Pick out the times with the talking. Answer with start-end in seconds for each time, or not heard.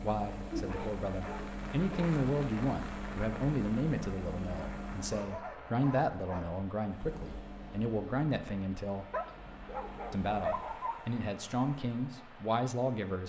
0.0-9.1, 10.1-13.2.